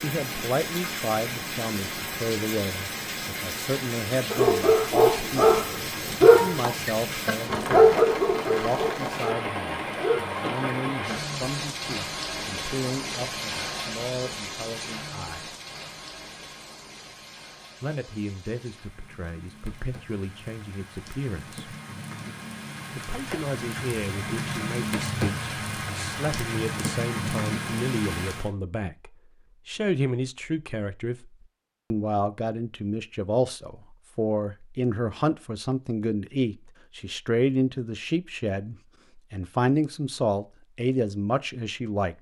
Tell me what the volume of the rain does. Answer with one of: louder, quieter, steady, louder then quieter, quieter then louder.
quieter then louder.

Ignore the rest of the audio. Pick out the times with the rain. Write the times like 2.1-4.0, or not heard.
0.0-28.5.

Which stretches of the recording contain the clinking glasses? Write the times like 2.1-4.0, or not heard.
not heard.